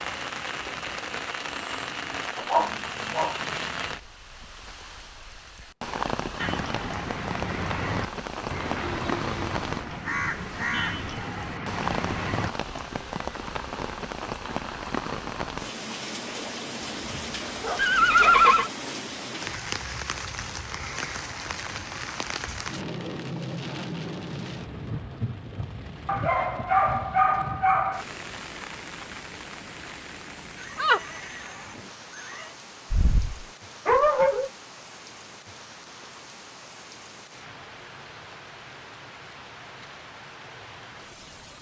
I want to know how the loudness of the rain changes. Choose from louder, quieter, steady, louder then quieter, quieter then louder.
quieter.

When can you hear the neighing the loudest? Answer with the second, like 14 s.
18 s.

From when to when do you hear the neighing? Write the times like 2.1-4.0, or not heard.
17.8-18.7, 30.6-32.5.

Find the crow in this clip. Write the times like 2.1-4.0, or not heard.
6.3-12.5.